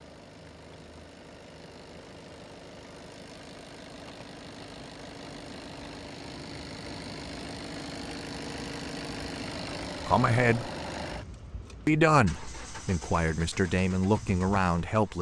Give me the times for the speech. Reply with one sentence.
The speech can be heard from 10.1 to 10.7 s and from 11.8 to 15.1 s.